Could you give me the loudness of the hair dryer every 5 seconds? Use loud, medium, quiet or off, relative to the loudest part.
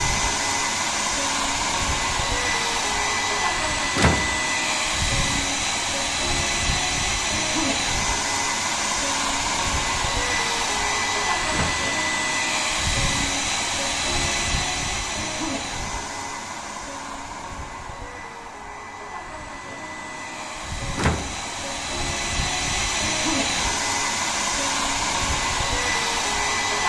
loud, loud, loud, medium, loud, loud.